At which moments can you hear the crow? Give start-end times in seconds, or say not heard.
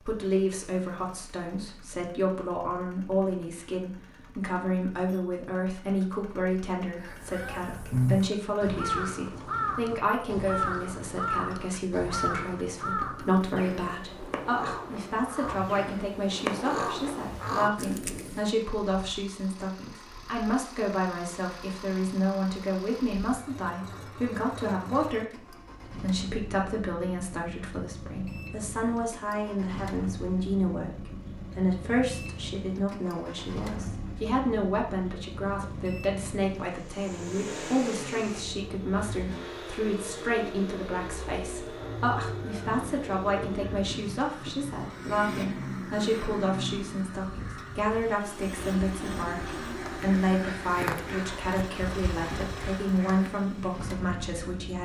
7.0-18.5, 41.6-53.4.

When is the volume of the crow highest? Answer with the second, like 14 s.
8 s.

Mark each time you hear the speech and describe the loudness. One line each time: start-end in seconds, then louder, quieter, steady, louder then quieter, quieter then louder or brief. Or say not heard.
0.0-54.7 steady.